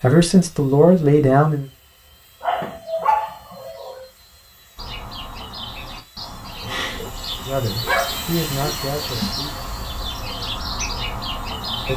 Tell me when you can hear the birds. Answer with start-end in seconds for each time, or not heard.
4.8-11.9.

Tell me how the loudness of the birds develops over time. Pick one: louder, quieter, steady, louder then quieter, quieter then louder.
louder.